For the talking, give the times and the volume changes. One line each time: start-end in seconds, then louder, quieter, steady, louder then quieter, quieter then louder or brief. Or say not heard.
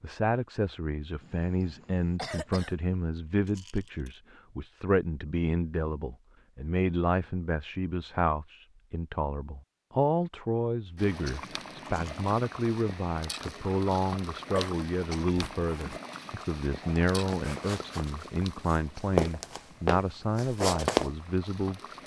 0.0-21.8 steady.